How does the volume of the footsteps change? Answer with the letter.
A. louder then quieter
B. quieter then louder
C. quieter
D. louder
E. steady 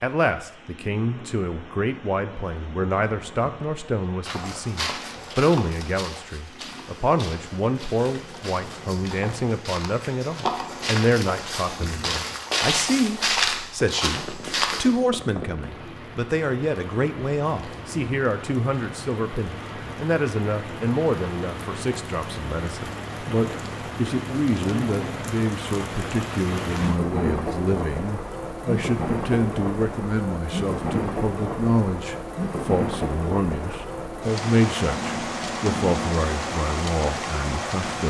B.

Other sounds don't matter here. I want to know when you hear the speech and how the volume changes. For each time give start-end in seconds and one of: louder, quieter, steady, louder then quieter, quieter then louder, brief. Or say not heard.
0.0-38.0 steady.